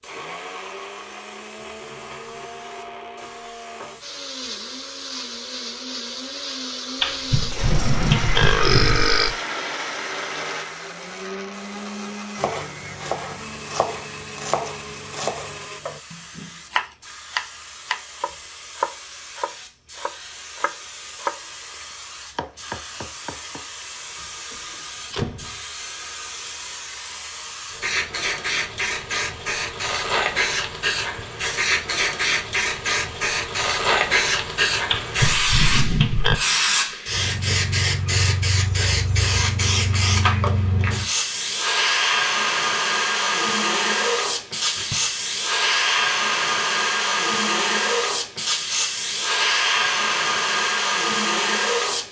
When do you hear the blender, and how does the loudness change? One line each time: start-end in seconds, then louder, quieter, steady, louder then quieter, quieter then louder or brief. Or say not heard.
0.0-15.8 louder then quieter.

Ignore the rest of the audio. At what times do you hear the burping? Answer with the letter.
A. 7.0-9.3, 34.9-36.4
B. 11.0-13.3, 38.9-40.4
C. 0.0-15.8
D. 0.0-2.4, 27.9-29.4
A.